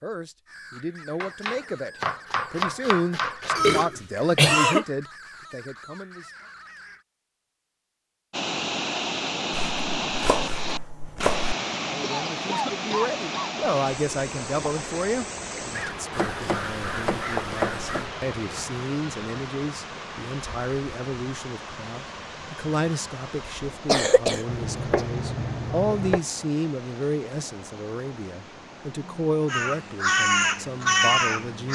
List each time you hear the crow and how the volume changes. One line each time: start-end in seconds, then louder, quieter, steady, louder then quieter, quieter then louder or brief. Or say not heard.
0.5-7.0 steady
15.7-18.1 brief
29.4-31.7 brief.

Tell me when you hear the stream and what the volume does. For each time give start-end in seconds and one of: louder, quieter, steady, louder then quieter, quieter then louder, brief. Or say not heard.
8.3-31.7 quieter.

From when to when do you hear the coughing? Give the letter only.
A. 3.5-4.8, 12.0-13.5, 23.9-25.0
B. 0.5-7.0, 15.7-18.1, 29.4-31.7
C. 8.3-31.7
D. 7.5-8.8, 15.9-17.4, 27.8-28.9
A.